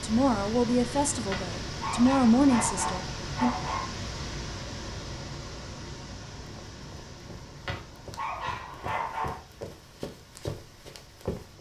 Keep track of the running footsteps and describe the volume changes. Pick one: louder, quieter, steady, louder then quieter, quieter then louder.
louder.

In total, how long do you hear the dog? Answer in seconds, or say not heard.
4 s.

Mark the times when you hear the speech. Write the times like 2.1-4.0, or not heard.
0.0-3.5.